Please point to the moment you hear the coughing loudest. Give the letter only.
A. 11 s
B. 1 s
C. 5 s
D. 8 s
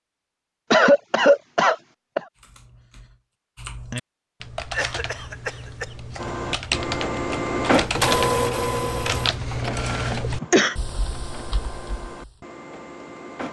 B.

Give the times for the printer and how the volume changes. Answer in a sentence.
The printer can be heard from 6.2 to 13.4 s, getting quieter.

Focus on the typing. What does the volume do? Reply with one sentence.
The volume of the typing goes up, then down.